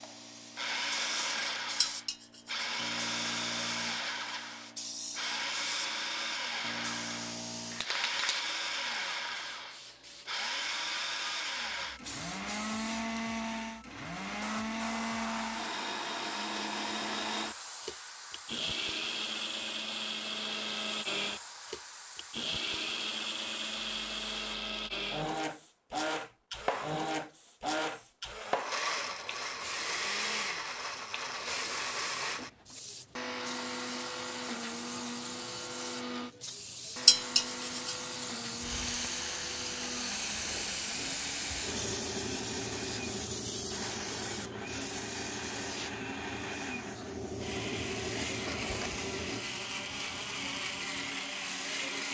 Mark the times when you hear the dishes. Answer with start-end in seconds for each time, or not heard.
1.8-2.6, 37.0-38.0.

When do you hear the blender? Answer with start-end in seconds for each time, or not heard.
0.0-52.0.